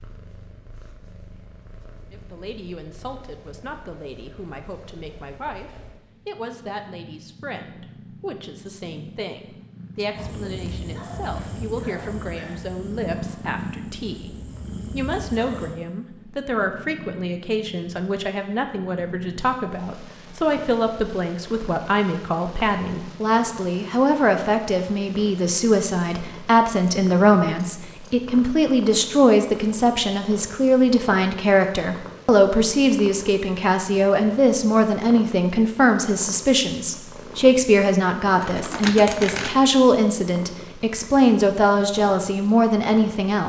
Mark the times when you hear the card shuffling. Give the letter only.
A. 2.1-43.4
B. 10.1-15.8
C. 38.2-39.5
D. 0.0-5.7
C.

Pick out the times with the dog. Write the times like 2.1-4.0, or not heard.
10.1-15.8.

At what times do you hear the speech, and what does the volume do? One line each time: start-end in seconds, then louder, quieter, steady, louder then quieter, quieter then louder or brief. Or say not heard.
2.1-43.4 louder.